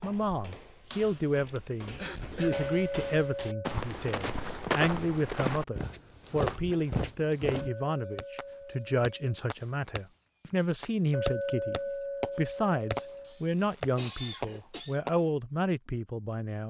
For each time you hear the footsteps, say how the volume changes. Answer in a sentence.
You can hear the footsteps from 0.0 to 7.7 s, getting louder.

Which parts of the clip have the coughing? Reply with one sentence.
The coughing can be heard from 1.4 to 2.6 s and from 13.2 to 15.0 s.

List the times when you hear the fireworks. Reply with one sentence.
You can hear the fireworks from 7.7 to 15.2 s.